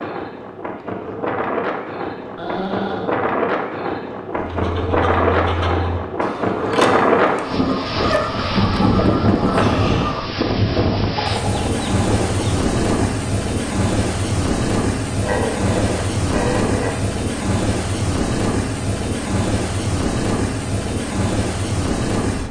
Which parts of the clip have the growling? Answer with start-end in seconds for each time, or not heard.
2.2-3.1, 15.2-17.0.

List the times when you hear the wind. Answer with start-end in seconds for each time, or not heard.
0.0-22.4.